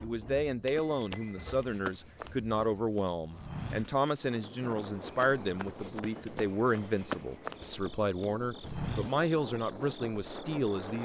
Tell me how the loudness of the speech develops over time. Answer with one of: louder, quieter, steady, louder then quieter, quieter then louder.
steady.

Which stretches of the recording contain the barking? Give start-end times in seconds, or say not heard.
not heard.